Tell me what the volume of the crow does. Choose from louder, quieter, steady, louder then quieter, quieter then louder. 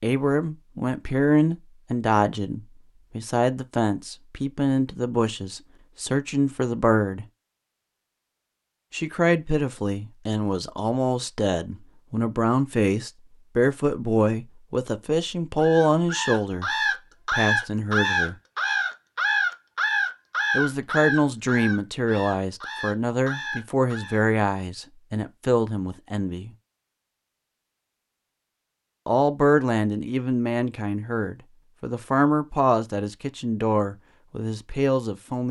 quieter.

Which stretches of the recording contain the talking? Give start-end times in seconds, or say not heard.
0.0-7.2, 8.9-16.7, 17.3-18.4, 20.5-26.6, 29.1-35.4.